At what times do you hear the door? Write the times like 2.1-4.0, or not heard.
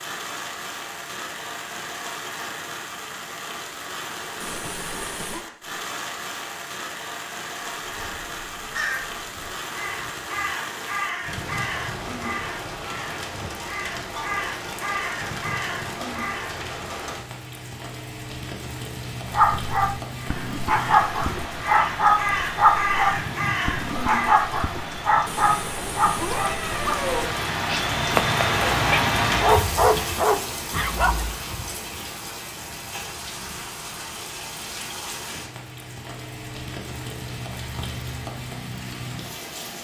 not heard.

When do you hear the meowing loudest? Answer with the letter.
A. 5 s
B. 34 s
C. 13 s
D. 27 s
D.